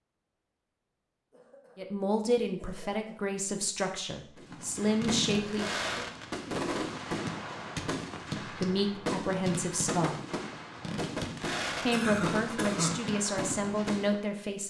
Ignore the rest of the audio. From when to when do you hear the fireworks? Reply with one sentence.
You can hear the fireworks from 4.3 to 14.2 s.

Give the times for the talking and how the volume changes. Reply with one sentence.
The talking can be heard from 1.8 to 5.8 s, getting quieter then louder; briefly from 8.4 to 10.2 s; and briefly from 11.8 to 14.6 s.